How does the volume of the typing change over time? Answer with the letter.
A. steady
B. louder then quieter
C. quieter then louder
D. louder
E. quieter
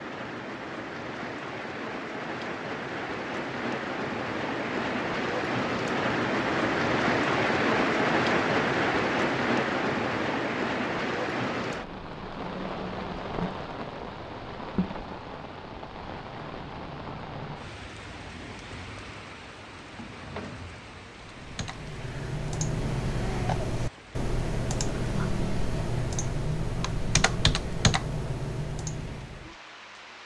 A.